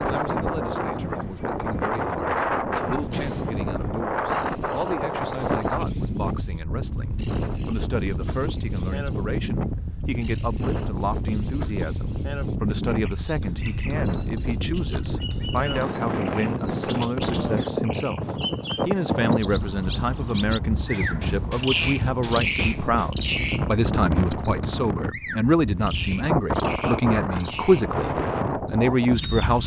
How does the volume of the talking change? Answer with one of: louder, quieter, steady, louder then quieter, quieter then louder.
louder.